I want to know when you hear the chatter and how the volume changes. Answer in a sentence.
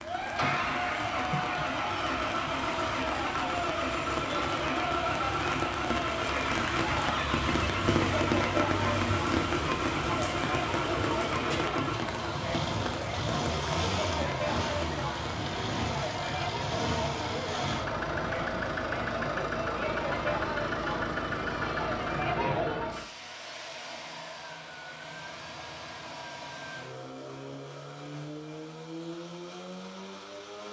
The chatter can be heard from 0.0 to 22.9 s, at a steady volume.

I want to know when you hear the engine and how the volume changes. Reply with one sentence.
You can hear the engine from 0.2 to 30.6 s, getting quieter.